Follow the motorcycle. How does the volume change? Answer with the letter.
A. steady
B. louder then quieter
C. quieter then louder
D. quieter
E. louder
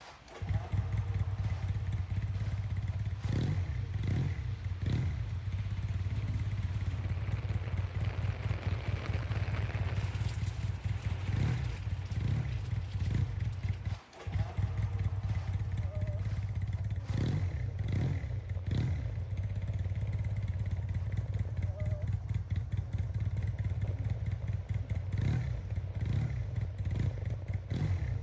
A.